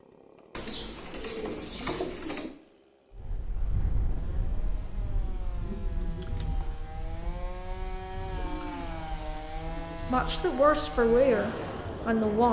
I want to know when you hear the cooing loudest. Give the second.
2 s.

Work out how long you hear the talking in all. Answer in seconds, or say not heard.
2 s.